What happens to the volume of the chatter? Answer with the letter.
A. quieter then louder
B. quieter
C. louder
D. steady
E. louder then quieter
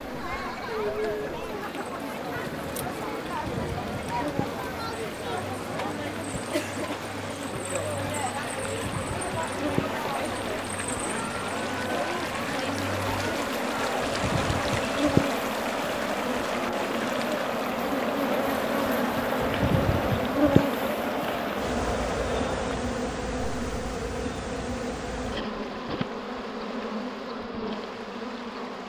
D.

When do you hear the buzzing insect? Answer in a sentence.
The buzzing insect can be heard from 0.0 to 28.8 s.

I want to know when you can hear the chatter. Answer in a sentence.
You can hear the chatter from 0.0 to 22.9 s.